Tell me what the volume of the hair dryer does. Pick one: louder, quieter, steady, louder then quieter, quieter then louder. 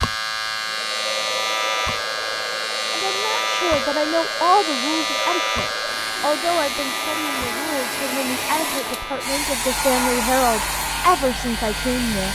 louder.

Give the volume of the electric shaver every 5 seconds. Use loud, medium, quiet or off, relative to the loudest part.
loud, loud, medium.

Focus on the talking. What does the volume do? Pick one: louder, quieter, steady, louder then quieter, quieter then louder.
quieter then louder.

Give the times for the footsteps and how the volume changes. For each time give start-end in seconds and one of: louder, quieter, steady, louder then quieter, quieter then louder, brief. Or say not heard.
not heard.